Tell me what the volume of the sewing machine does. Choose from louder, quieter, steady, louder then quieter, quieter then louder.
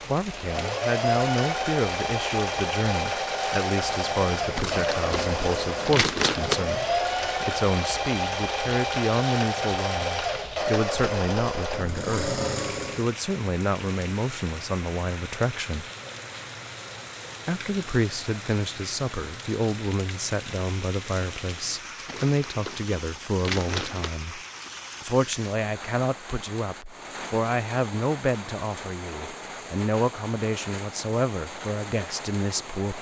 steady.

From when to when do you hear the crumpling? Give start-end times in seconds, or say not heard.
4.5-6.5, 22.1-24.1.